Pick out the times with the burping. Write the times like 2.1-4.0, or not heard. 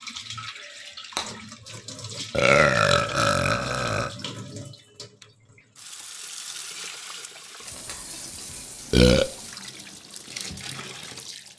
2.3-4.1, 8.9-9.3.